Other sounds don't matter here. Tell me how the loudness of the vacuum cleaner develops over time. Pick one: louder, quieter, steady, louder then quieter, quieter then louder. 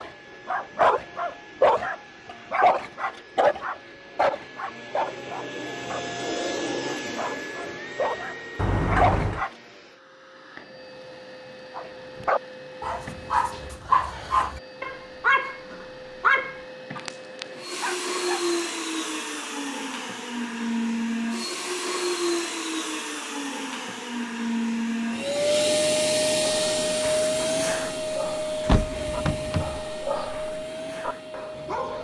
louder.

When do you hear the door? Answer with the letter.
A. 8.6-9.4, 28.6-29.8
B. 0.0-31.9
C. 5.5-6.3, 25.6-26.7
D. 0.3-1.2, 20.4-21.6
A.